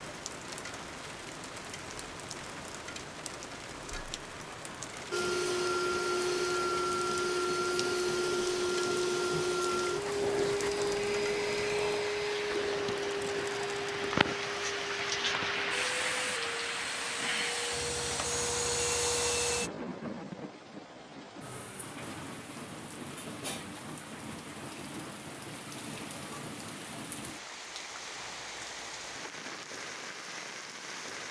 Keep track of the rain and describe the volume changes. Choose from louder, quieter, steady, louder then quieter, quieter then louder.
louder then quieter.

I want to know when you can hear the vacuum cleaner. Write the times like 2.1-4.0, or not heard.
5.1-19.7.